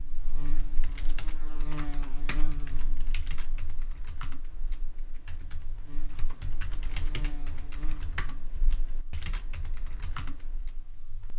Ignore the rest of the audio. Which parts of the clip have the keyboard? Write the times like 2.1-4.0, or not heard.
0.3-10.9.